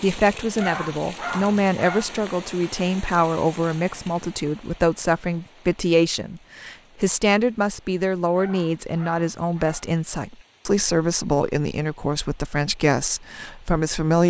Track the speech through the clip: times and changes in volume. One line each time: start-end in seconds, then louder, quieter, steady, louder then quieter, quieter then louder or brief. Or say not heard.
0.0-14.2 steady.